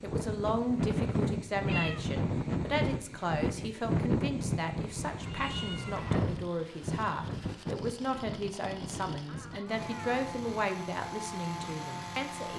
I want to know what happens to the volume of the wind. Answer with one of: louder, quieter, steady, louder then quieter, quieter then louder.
quieter.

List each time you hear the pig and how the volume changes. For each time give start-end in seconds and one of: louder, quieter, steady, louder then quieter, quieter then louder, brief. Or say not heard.
not heard.